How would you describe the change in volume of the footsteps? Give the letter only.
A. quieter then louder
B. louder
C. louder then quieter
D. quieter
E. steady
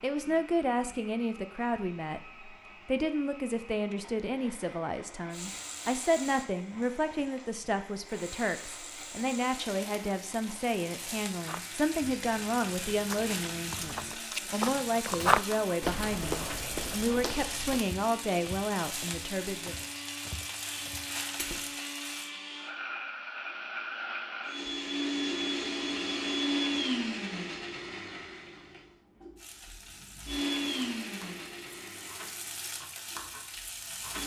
C.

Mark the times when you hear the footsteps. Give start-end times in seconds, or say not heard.
11.3-21.1.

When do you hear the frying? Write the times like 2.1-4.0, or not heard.
5.3-22.3, 29.4-34.2.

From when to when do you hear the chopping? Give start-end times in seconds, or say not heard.
not heard.